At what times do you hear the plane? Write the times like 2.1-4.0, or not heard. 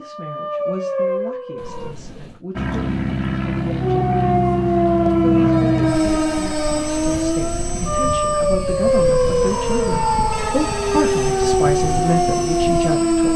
2.5-13.3.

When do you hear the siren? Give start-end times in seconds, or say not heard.
0.0-1.9, 3.8-13.3.